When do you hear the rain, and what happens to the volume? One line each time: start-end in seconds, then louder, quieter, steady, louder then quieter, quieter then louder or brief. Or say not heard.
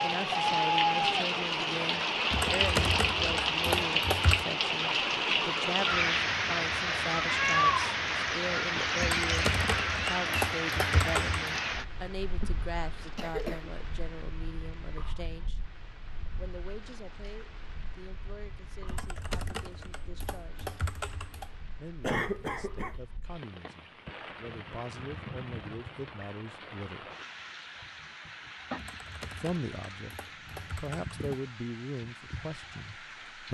0.0-33.5 quieter then louder.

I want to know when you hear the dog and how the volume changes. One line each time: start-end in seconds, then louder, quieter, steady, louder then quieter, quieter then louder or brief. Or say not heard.
not heard.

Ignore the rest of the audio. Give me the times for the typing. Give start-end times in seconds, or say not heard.
2.3-4.5, 9.0-11.4, 18.9-21.5, 28.8-31.5.